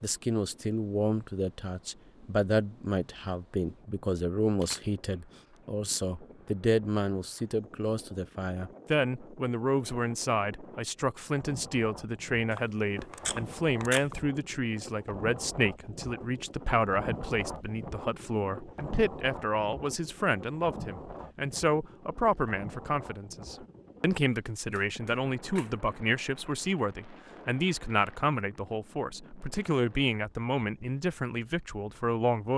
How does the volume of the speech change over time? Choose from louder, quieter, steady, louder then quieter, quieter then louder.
steady.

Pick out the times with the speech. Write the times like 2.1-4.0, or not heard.
0.0-32.5.